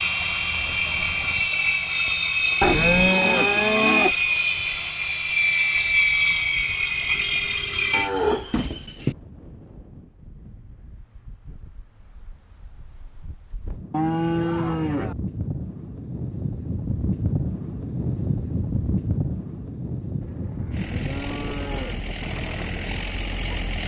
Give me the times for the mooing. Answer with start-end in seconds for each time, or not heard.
2.6-4.2, 7.9-9.2, 13.9-15.2, 20.2-22.1.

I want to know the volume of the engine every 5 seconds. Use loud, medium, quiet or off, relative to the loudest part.
loud, loud, off, off, quiet.